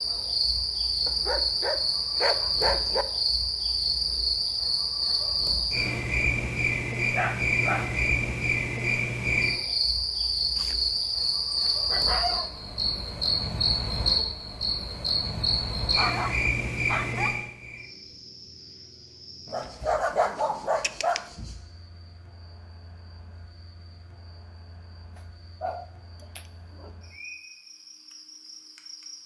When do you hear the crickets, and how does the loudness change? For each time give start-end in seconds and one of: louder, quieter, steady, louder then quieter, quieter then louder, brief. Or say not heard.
0.0-29.2 quieter.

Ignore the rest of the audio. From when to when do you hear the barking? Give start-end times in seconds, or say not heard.
1.1-3.0, 7.1-8.0, 10.6-12.5, 15.9-17.5, 19.5-21.2, 25.1-26.9.